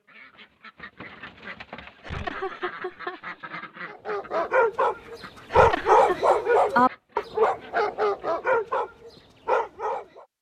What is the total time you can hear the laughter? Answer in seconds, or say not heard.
2 s.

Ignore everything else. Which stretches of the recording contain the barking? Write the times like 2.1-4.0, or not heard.
3.9-10.2.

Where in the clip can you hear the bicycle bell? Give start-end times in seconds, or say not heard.
not heard.